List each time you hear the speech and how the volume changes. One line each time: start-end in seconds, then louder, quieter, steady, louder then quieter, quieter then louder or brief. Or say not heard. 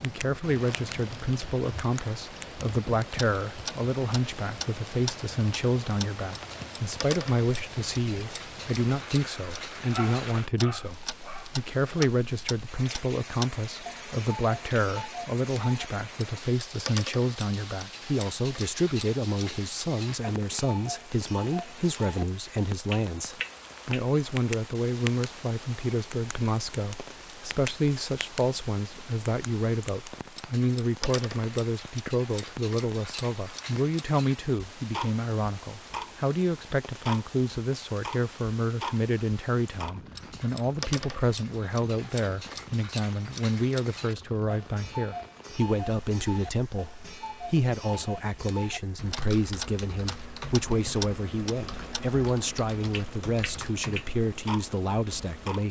0.0-55.6 steady.